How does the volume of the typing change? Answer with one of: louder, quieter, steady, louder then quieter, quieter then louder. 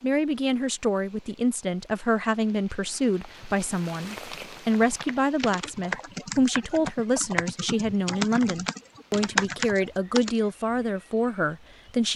louder.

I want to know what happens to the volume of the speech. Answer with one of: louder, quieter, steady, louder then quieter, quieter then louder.
steady.